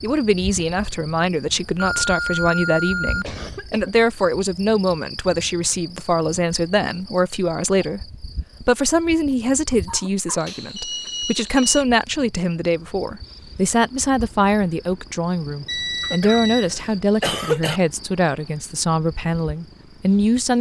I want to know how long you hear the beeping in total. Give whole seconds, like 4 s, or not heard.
4 s.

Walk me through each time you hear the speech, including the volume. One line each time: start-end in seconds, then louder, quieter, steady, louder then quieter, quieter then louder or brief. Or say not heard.
0.0-20.5 steady.